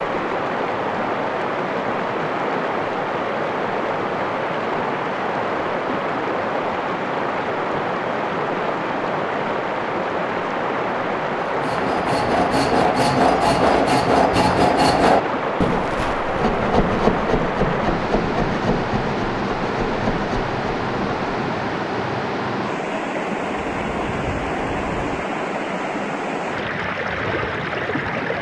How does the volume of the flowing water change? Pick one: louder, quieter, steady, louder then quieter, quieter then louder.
steady.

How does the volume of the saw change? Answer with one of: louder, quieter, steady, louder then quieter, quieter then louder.
quieter.